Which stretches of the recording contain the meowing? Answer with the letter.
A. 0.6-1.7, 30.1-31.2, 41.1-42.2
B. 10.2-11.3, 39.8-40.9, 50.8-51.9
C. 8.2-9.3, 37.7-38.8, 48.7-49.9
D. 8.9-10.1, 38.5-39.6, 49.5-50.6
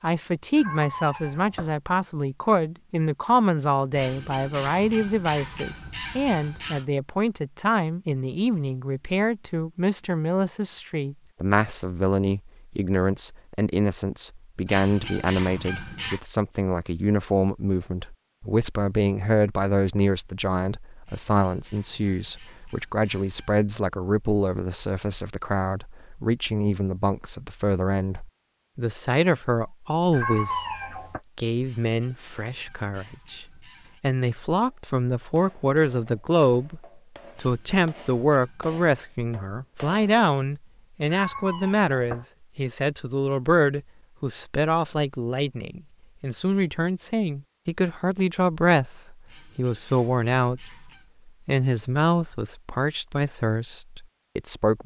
A.